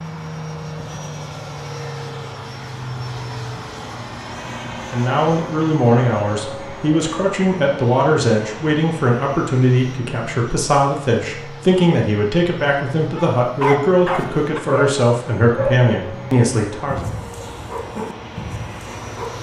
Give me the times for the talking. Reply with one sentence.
You can hear the talking from 4.9 to 17.1 s.